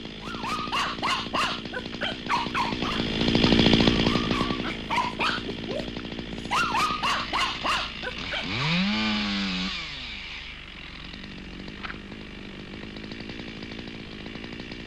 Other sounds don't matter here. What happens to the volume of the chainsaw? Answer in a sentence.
The volume of the chainsaw goes up, then down.